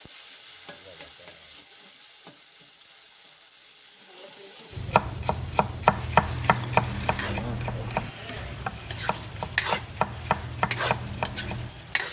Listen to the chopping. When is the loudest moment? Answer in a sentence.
The loudest moment of the chopping is at 6 seconds.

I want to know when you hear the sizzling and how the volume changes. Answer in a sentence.
You can hear the sizzling from 0.0 to 12.0 s, getting louder.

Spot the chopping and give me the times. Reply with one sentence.
You can hear the chopping from 4.8 to 11.8 s.